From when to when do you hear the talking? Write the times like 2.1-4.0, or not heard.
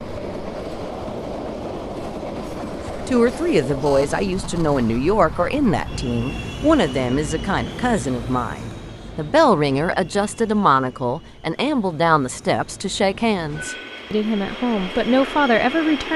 3.0-16.1.